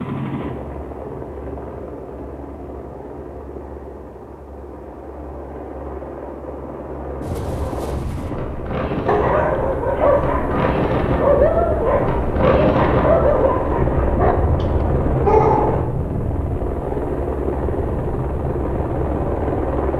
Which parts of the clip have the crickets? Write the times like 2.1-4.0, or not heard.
not heard.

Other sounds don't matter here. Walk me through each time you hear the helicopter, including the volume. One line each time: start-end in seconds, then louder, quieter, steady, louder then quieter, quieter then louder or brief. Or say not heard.
0.0-19.9 louder.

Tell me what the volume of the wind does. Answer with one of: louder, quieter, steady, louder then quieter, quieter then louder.
louder then quieter.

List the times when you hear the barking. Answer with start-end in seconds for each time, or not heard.
9.1-15.8.